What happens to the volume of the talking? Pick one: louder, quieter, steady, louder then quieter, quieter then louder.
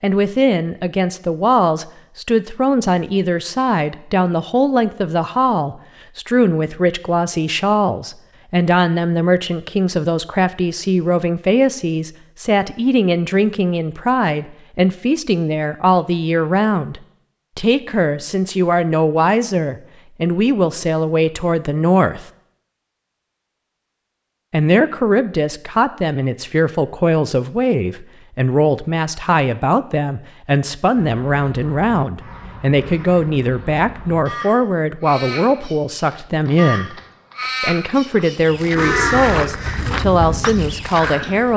steady.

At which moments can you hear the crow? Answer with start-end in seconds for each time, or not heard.
31.1-41.5.